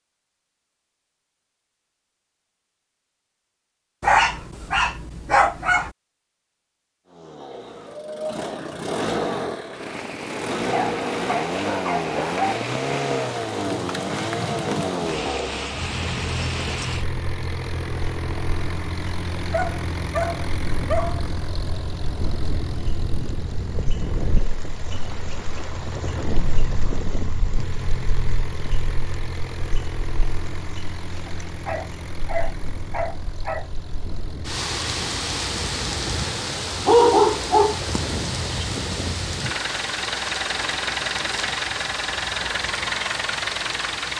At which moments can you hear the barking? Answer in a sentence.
You can hear the barking from 4.0 to 5.9 s, from 10.7 to 12.6 s, from 19.5 to 21.2 s, from 31.2 to 33.6 s and from 36.9 to 38.0 s.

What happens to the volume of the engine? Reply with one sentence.
The loudness of the engine goes down, then up.